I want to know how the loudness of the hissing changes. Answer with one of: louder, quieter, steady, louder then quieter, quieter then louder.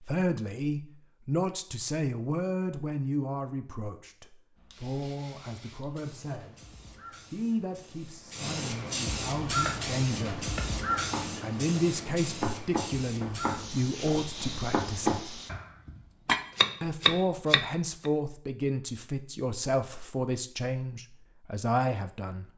louder then quieter.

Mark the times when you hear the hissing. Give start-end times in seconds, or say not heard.
4.5-15.5.